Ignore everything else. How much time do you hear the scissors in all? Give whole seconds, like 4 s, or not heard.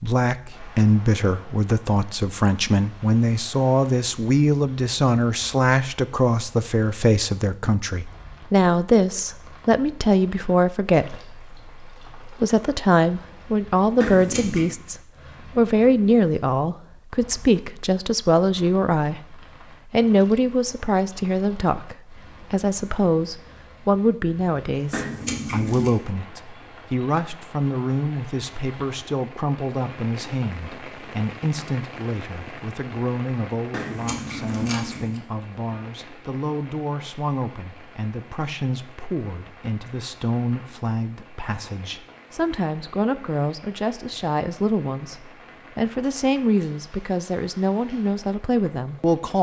3 s.